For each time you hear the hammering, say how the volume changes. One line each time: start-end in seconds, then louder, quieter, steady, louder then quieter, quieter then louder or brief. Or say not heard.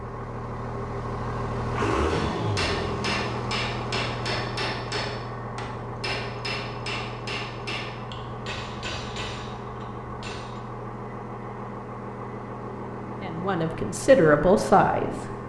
2.0-10.6 quieter.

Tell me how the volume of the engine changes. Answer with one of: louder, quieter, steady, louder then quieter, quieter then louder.
quieter.